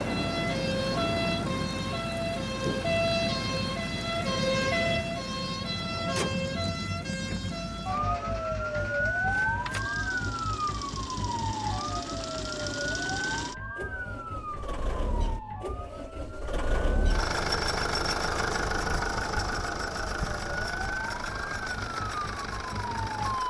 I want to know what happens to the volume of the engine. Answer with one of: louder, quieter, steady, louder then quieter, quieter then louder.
louder.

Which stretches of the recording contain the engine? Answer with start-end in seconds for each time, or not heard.
0.0-23.4.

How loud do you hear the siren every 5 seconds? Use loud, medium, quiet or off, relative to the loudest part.
loud, loud, medium, quiet, medium.